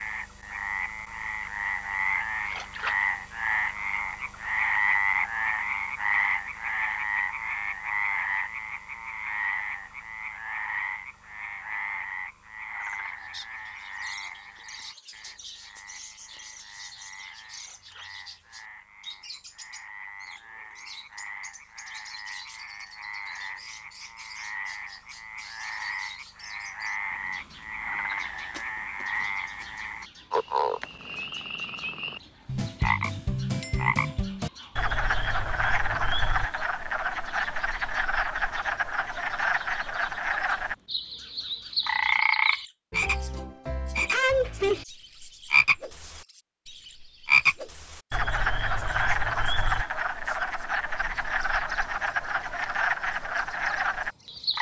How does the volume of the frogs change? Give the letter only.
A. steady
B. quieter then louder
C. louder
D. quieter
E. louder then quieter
B.